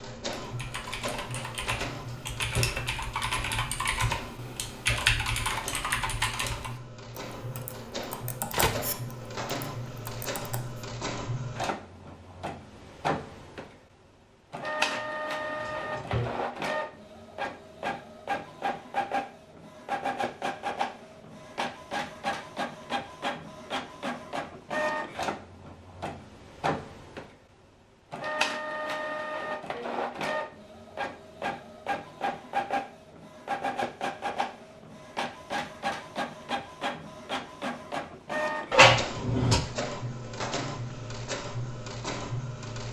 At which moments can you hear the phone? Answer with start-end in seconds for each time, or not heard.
8.5-8.9.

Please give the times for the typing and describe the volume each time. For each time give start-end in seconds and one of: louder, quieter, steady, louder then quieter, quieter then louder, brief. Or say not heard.
0.4-10.8 louder then quieter.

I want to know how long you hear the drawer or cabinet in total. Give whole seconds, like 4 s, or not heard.
4 s.